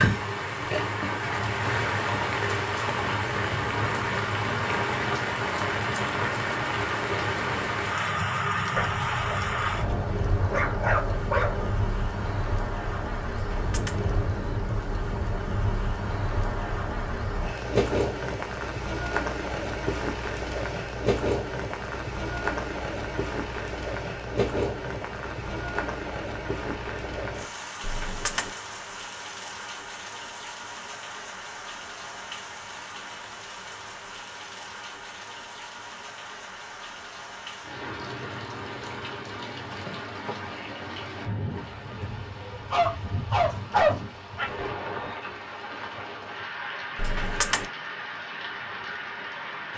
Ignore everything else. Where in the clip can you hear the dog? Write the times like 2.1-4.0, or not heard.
8.8-11.7, 42.7-44.5.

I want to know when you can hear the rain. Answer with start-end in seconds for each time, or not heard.
0.0-49.7.